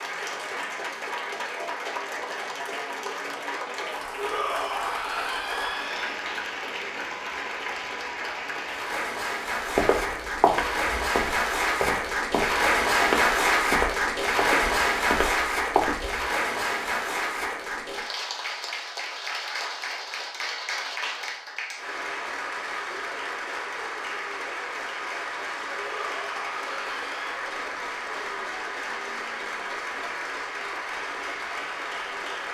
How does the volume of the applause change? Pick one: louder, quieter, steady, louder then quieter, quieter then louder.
louder then quieter.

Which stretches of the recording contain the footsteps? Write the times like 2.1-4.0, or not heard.
9.8-16.2.